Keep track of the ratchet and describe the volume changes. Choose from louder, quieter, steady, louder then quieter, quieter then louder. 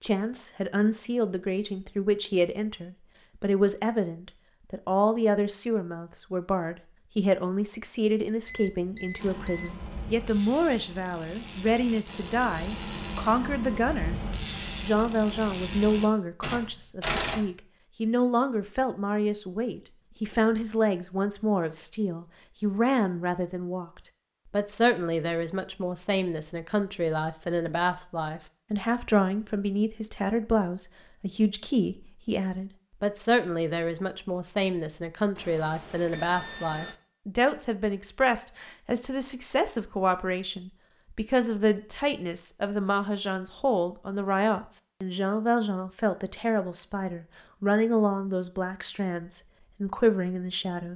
louder.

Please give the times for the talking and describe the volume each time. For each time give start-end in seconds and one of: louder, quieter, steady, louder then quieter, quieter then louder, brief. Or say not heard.
0.0-50.9 steady.